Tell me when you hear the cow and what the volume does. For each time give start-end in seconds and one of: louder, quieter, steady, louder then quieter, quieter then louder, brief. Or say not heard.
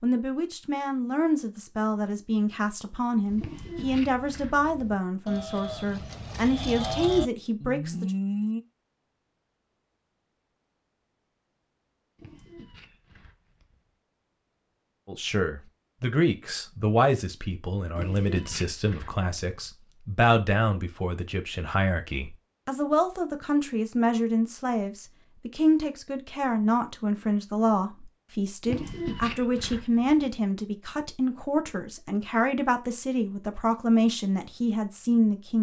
3.2-8.6 louder.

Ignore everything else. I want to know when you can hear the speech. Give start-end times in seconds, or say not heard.
0.0-8.1, 15.1-35.5.